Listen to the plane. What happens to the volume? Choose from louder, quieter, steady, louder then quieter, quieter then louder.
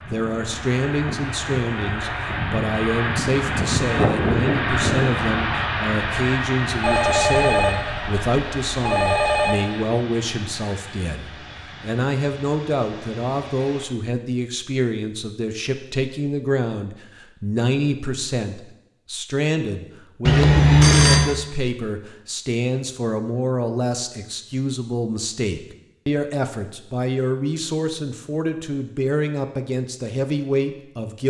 louder then quieter.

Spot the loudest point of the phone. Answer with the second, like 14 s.
21 s.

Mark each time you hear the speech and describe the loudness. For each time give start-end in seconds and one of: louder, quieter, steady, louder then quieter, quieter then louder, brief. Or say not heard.
0.1-31.2 steady.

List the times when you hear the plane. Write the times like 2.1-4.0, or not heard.
0.0-13.8.